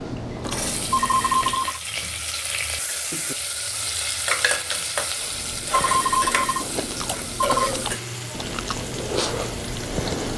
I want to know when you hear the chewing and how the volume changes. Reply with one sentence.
You can hear the chewing briefly from 0.0 to 1.8 s; and from 5.2 to 10.3 s, getting louder.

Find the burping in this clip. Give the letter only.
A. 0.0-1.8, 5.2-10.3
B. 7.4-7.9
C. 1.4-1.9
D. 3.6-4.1
B.